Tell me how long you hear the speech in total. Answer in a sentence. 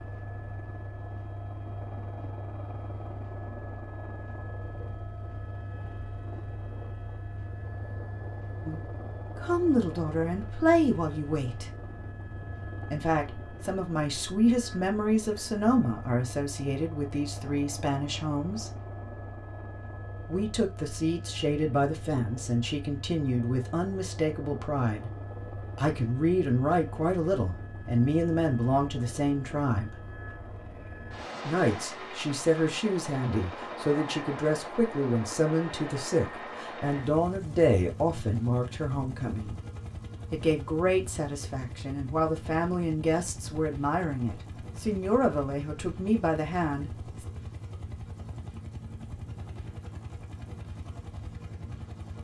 The speech can be heard for 33 seconds in total.